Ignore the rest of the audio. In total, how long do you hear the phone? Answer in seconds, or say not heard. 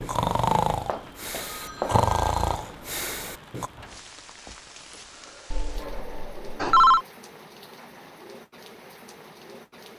3 s.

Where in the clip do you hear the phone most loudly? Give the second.
7 s.